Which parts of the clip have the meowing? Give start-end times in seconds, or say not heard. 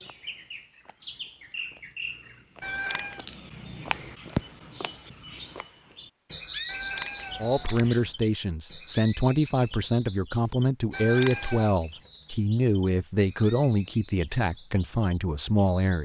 2.6-3.2, 6.7-8.0, 10.9-11.8.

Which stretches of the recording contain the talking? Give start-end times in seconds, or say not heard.
7.4-15.9.